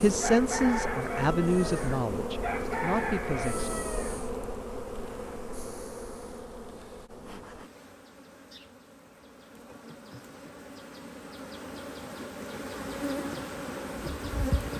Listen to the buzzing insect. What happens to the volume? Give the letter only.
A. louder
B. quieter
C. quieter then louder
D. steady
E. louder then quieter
C.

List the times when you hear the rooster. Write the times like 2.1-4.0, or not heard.
0.2-4.2.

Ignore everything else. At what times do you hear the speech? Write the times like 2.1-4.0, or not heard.
0.0-3.7.